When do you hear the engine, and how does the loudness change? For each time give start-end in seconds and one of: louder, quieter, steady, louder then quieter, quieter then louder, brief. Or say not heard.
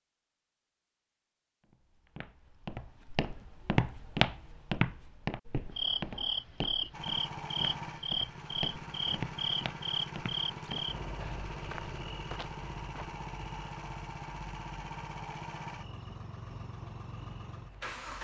6.9-18.1 steady.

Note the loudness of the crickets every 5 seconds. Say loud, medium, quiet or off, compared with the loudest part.
off, loud, medium, quiet.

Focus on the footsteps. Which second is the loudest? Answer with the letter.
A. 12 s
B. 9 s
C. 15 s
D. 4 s
D.